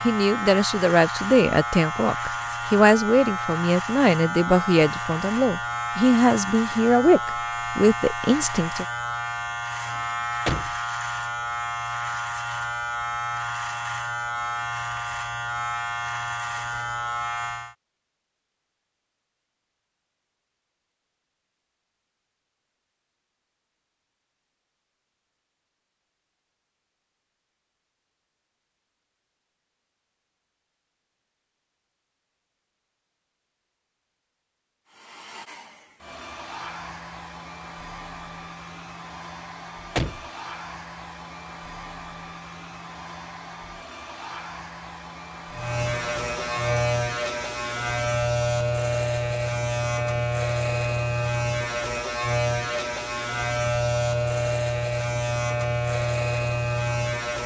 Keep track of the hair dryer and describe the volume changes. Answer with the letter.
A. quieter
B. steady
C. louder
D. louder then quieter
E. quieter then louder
B.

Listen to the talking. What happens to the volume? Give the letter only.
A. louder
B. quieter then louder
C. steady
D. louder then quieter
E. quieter
C.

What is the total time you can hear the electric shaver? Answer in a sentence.
The electric shaver can be heard for 30 seconds in total.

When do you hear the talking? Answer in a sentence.
The talking can be heard from 0.0 to 8.8 s.